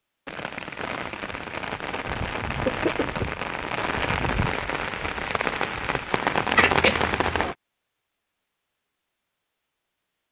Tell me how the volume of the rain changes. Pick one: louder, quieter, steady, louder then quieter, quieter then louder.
louder.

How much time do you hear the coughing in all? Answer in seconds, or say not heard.
2 s.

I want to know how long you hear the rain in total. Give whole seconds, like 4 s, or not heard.
7 s.